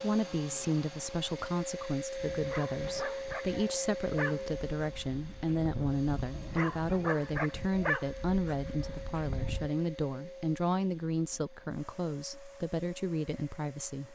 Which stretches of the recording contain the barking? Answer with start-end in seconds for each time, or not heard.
2.3-9.7.